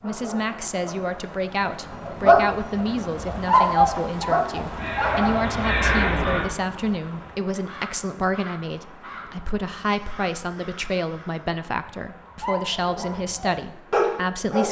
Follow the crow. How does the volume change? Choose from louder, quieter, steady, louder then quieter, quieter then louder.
quieter.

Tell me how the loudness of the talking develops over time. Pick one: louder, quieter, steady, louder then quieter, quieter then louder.
steady.